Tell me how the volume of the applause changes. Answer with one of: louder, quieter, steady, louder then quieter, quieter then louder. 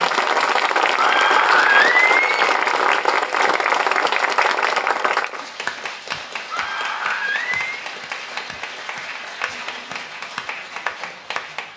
quieter.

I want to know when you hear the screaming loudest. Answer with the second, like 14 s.
2 s.